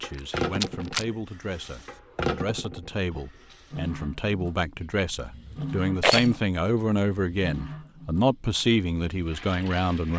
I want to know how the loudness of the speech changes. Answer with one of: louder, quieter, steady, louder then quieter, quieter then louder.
louder.